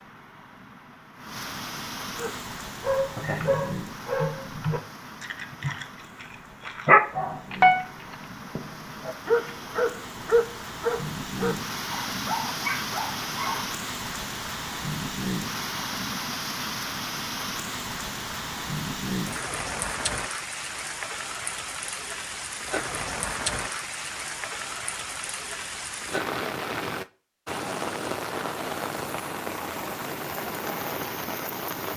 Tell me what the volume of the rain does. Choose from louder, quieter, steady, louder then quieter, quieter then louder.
louder.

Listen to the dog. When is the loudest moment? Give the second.
7 s.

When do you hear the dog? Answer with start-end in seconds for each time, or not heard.
2.1-13.7.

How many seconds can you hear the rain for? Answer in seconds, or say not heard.
32 s.